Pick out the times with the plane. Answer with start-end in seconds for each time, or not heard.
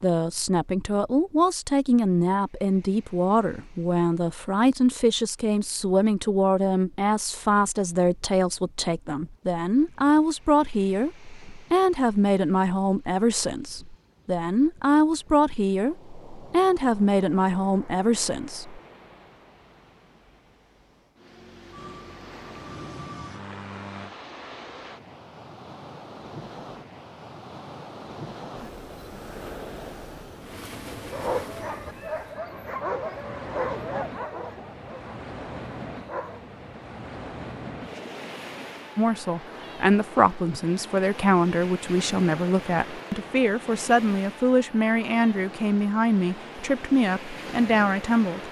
21.7-24.1.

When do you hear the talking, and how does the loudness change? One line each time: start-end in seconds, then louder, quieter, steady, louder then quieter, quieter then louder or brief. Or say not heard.
0.0-18.8 steady
39.0-48.4 steady.